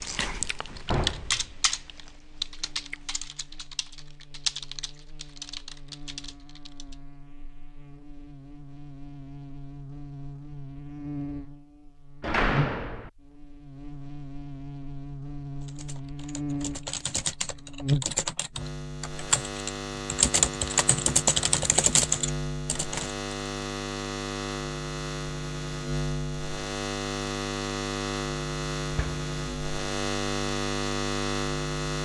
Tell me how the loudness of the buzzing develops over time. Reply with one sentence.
The loudness of the buzzing goes up.